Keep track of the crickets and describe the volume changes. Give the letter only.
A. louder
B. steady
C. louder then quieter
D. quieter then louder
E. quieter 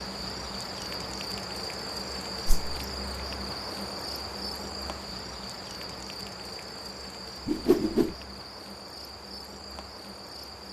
E.